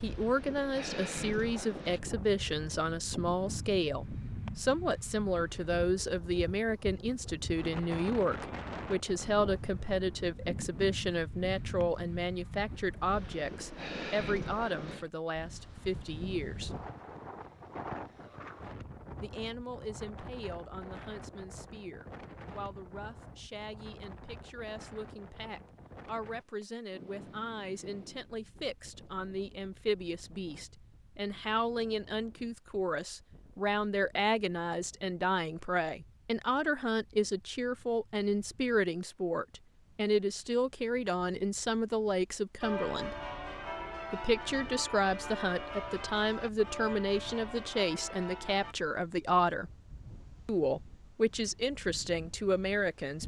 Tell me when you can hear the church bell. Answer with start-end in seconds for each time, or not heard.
42.6-48.8.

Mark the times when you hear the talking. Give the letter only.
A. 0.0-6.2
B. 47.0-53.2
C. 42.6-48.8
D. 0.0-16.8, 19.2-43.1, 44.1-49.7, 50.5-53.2
D.